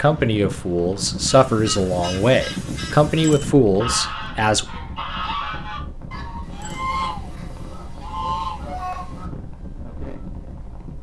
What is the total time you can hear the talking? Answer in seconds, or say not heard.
5 s.